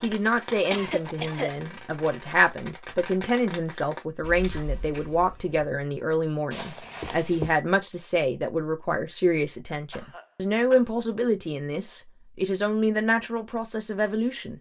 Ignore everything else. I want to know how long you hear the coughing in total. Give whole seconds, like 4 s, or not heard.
3 s.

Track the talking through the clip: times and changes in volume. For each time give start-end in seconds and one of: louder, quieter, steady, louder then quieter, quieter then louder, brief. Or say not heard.
0.0-14.5 steady.